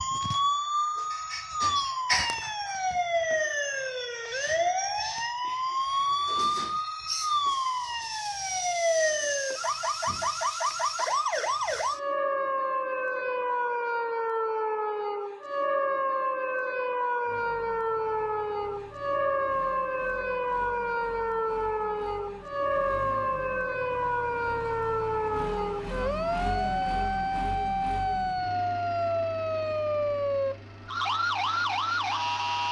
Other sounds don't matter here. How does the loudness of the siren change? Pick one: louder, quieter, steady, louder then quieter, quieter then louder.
steady.